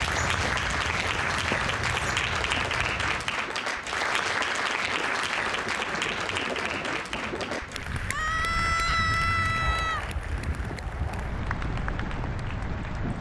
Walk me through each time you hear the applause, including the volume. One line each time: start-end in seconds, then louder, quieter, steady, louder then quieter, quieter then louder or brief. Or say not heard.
0.0-13.1 quieter.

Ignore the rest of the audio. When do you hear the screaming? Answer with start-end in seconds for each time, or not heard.
8.1-10.1.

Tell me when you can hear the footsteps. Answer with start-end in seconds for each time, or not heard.
0.0-3.4.